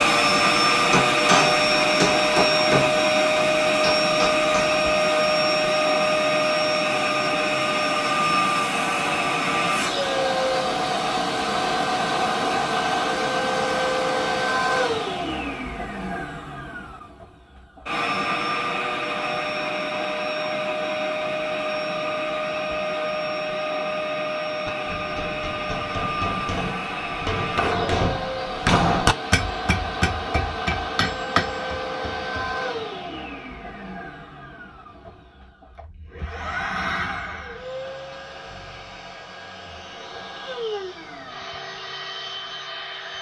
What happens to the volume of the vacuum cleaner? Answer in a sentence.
The volume of the vacuum cleaner goes down.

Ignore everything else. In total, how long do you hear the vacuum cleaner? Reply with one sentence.
The vacuum cleaner can be heard for 43 seconds in total.